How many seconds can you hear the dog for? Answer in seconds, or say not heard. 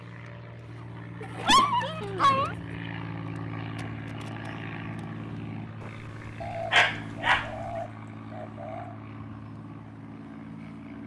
2 s.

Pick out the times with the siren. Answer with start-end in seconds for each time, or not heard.
not heard.